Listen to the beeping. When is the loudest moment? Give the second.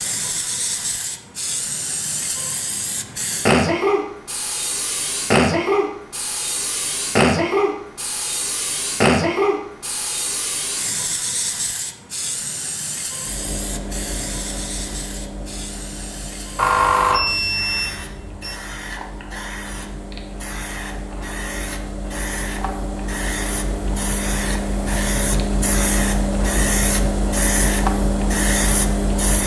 17 s.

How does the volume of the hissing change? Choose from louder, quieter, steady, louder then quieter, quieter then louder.
quieter then louder.